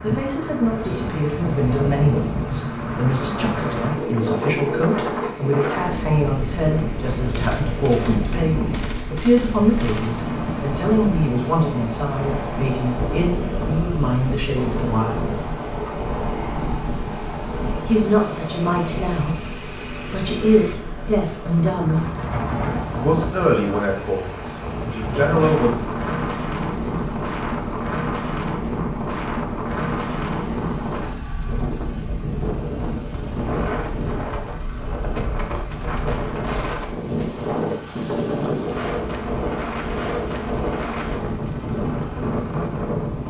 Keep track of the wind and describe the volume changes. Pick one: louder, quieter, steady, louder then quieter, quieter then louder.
steady.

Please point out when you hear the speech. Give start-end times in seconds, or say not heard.
0.0-15.3, 17.9-22.1, 22.9-25.8.